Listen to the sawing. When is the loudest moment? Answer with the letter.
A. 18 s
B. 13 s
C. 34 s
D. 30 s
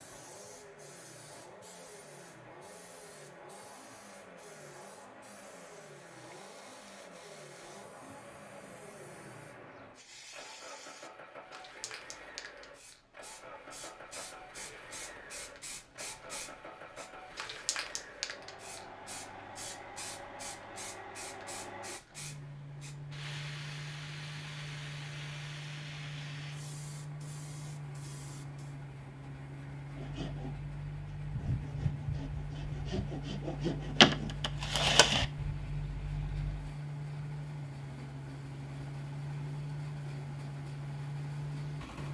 C.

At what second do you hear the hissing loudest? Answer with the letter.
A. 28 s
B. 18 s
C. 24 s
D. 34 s
B.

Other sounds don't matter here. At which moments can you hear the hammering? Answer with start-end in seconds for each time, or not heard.
not heard.